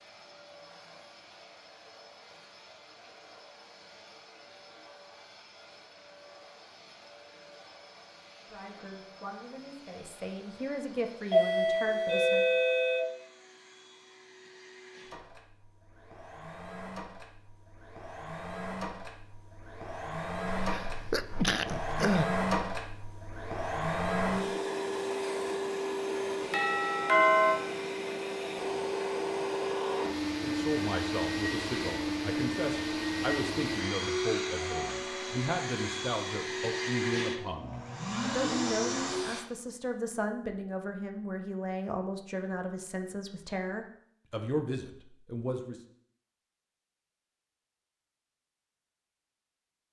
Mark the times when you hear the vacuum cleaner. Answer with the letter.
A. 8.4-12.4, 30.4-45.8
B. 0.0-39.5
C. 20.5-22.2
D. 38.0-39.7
B.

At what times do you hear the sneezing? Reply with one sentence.
The sneezing can be heard from 20.5 to 22.2 s.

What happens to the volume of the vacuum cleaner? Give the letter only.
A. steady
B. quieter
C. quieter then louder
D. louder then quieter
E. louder
E.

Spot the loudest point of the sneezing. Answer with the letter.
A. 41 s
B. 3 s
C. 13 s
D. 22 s
D.